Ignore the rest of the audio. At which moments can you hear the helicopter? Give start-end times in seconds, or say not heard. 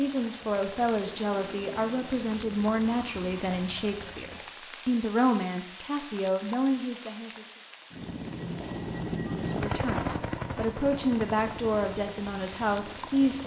0.0-4.5, 7.9-13.4.